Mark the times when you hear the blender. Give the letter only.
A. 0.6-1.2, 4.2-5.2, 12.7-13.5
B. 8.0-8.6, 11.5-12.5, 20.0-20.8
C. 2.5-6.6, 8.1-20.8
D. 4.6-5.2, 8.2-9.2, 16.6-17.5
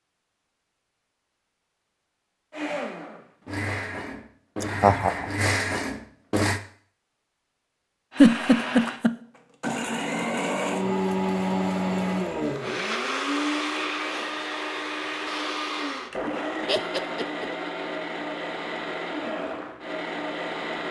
C.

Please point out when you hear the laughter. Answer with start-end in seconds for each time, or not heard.
4.6-5.2, 8.2-9.2, 16.6-17.5.